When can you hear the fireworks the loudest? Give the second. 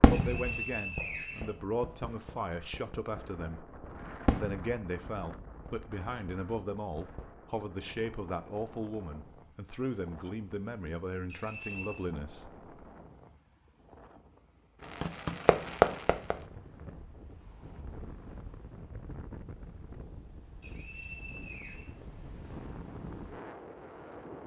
16 s.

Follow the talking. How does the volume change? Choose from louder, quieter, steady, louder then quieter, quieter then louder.
steady.